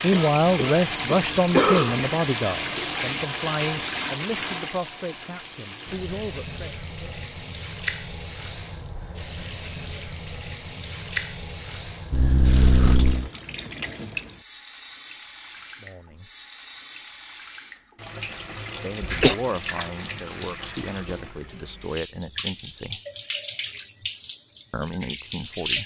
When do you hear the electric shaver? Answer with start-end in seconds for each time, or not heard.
not heard.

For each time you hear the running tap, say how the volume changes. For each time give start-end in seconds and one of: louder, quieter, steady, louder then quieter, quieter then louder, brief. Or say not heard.
0.0-25.8 quieter.